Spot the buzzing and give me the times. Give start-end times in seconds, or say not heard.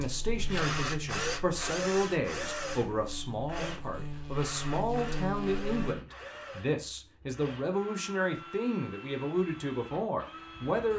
0.0-6.0.